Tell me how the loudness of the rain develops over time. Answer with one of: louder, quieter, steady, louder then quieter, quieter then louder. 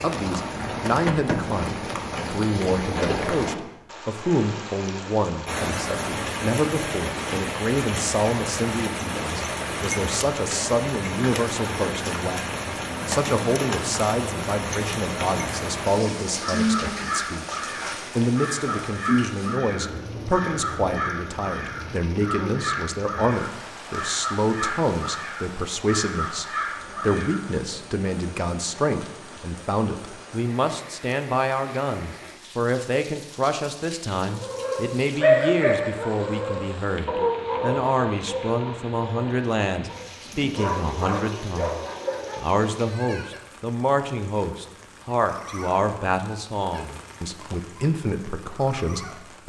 quieter.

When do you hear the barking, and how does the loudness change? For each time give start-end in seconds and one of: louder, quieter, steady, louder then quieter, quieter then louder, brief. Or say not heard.
34.2-42.5 quieter then louder.